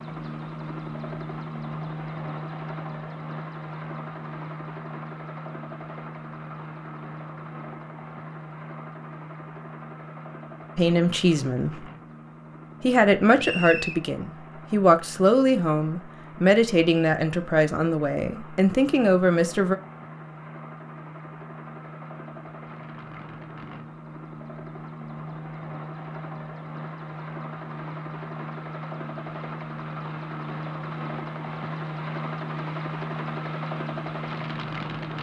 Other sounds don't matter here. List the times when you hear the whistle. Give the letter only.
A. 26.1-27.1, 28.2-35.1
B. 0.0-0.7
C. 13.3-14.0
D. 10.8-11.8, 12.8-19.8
C.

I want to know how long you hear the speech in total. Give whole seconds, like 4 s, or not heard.
8 s.